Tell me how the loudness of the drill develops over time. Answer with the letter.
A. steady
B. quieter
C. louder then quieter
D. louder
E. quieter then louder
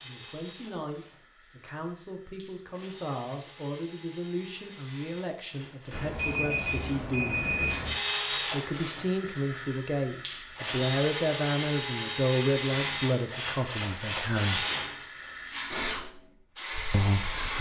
D.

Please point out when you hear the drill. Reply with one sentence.
You can hear the drill from 0.0 to 17.5 s.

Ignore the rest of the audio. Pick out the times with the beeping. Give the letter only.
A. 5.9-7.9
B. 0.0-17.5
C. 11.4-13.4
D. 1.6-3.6
A.